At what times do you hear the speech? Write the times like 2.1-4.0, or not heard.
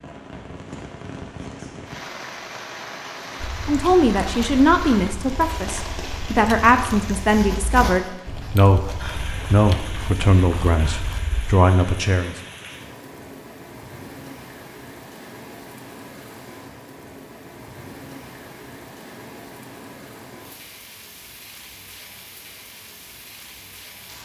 3.6-12.3.